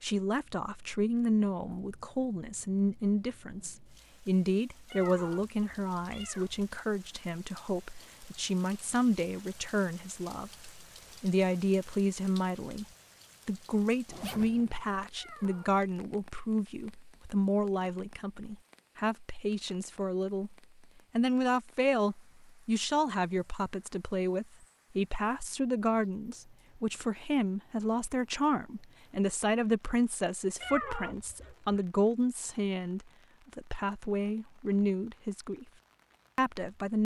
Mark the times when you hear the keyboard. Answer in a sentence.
You can't hear the keyboard here.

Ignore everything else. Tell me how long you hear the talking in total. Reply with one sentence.
The talking can be heard for 35 seconds in total.